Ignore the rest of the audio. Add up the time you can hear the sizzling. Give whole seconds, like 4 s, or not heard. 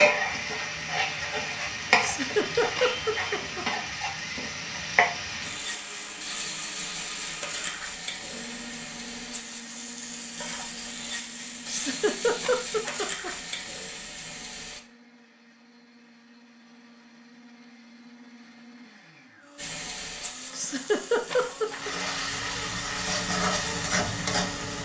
20 s.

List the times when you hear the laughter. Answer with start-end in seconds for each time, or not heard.
2.0-3.6, 11.7-13.3, 20.5-21.9.